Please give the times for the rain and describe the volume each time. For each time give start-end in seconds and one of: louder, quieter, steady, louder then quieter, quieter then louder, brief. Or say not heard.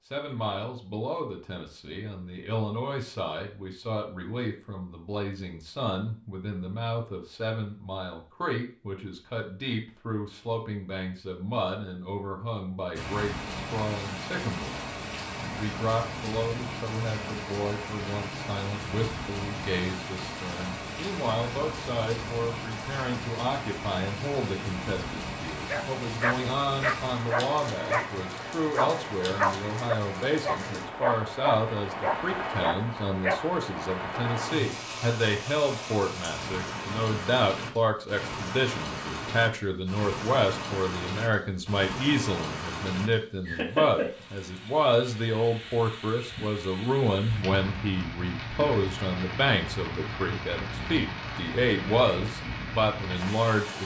12.9-53.8 steady.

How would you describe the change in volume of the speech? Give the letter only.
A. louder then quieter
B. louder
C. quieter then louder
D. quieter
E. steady
B.